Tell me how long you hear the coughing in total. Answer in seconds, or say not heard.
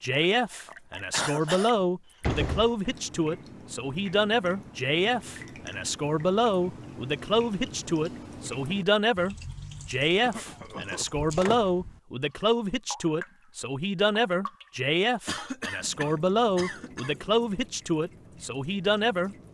4 s.